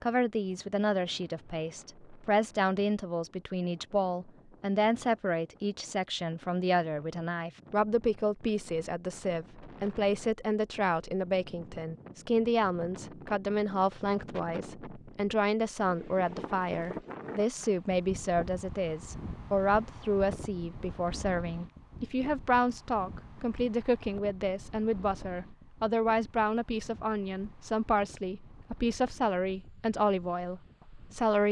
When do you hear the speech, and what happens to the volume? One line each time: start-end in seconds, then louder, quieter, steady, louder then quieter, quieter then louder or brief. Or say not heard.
0.0-31.4 steady.